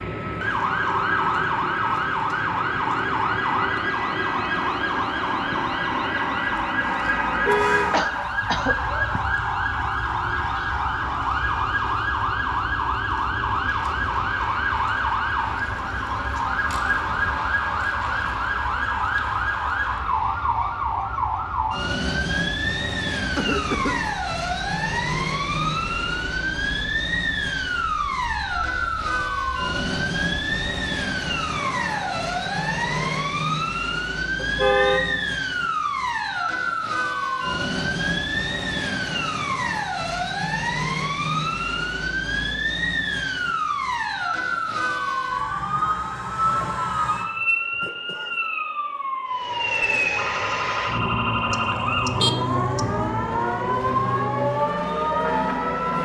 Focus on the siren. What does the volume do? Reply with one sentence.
The volume of the siren stays about the same.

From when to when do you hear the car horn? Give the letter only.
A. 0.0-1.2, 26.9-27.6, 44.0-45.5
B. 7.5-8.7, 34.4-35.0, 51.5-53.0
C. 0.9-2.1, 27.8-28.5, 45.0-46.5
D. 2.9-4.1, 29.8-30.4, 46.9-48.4
B.